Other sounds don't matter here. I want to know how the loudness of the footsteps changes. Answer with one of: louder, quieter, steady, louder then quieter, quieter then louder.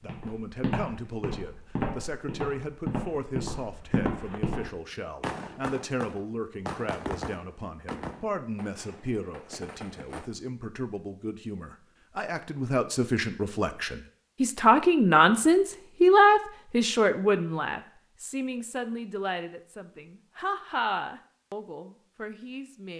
quieter then louder.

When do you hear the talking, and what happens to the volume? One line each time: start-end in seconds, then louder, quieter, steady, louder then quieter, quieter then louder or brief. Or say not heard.
0.0-22.9 louder then quieter.